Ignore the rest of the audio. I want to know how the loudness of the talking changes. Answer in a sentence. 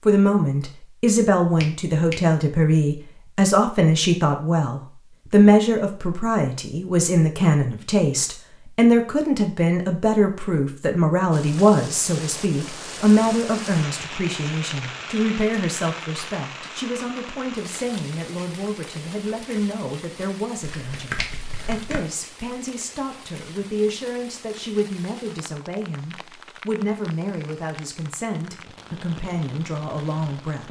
The volume of the talking goes down.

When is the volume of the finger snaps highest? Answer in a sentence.
The loudest moment of the finger snaps is at 21 seconds.